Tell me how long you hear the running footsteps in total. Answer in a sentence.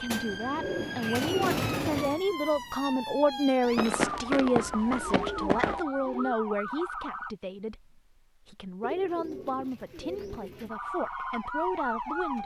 You can hear the running footsteps for 2 seconds altogether.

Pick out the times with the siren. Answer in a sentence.
The siren can be heard from 0.0 to 7.3 s and from 10.7 to 12.4 s.